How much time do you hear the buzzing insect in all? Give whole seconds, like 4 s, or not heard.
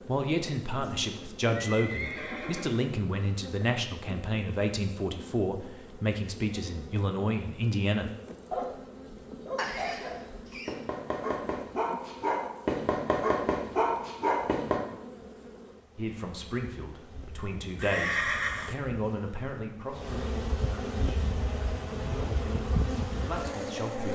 24 s.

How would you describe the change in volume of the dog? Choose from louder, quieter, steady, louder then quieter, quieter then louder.
louder.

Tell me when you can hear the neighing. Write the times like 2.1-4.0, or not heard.
0.8-2.8, 9.6-10.8, 17.8-18.8.